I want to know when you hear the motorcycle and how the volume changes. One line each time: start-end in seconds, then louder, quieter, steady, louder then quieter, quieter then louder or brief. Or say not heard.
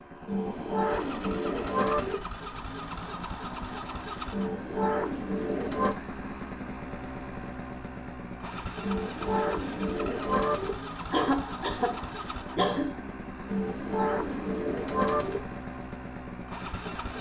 0.0-17.1 steady.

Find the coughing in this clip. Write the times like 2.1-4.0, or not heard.
11.1-12.9.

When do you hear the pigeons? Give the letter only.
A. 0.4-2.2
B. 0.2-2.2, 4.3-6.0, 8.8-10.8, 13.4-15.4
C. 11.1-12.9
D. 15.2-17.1
B.